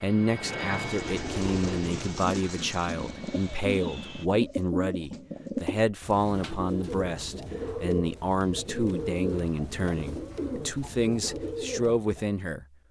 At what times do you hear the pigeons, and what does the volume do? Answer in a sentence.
You can hear the pigeons from 0.8 to 12.3 s, at a steady volume.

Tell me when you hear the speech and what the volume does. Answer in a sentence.
The speech can be heard from 0.0 to 12.7 s, at a steady volume.